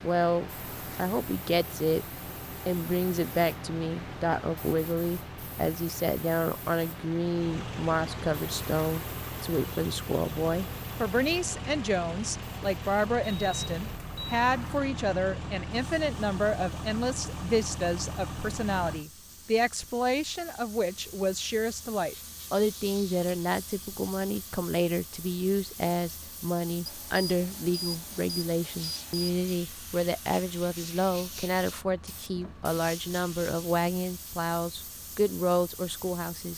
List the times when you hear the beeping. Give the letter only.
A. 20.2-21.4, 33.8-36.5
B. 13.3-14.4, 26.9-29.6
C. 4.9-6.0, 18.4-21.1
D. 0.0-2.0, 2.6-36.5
B.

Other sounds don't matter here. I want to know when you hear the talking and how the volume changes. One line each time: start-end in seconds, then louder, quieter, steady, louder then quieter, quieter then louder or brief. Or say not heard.
0.0-2.0 brief
2.6-36.5 steady.